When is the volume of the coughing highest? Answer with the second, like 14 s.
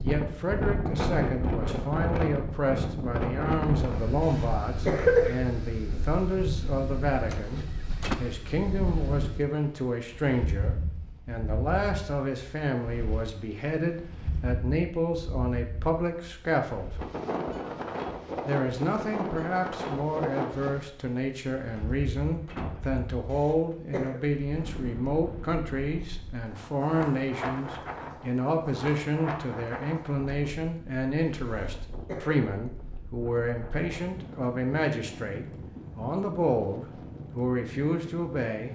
5 s.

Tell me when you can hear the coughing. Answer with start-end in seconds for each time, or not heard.
4.2-5.3, 23.2-24.2, 31.4-32.4.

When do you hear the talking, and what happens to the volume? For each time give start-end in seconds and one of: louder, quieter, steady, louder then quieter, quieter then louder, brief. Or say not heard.
0.0-16.9 steady
18.4-38.7 steady.